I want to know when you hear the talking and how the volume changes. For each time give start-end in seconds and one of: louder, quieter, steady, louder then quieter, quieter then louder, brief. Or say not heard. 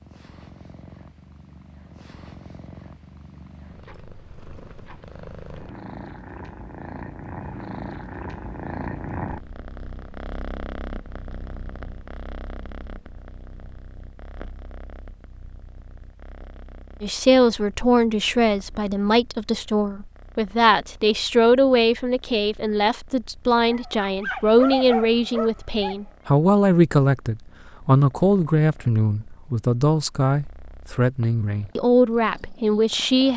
17.0-33.3 steady.